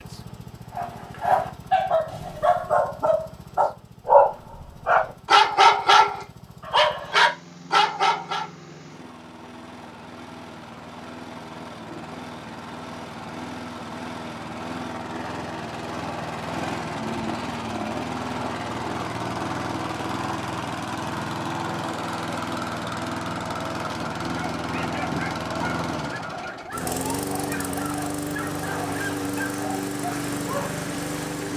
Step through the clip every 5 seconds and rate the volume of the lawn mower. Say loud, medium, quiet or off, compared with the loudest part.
quiet, quiet, medium, loud, loud, loud, loud.